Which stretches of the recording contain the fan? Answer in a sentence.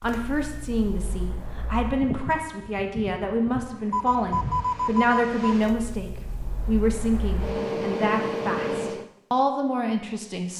You can hear the fan from 0.0 to 9.1 s.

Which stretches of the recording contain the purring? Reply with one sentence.
The purring can't be heard in this clip.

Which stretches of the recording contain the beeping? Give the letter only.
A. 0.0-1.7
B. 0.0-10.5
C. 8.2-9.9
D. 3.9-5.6
D.